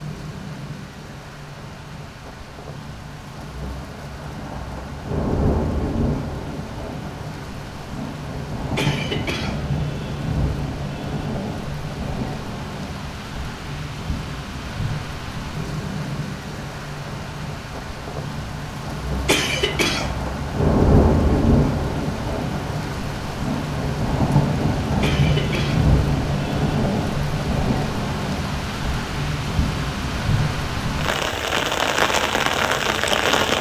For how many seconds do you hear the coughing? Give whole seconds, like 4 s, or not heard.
3 s.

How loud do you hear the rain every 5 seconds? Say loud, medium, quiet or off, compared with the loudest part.
quiet, medium, medium, medium, loud, loud, loud.